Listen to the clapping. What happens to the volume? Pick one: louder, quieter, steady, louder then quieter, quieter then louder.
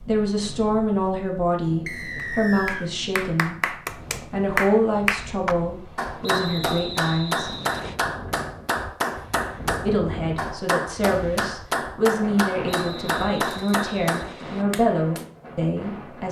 steady.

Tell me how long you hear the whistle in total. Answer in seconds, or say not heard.
5 s.